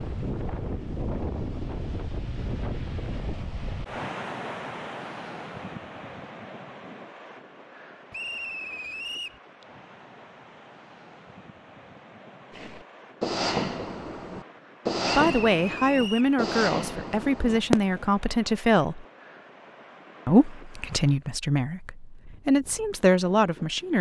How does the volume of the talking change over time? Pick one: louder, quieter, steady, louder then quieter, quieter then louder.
steady.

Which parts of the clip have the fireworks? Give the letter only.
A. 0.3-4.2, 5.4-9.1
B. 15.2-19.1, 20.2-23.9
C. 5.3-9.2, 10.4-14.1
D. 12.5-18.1
D.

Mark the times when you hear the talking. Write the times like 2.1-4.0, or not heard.
15.2-19.1, 20.2-23.9.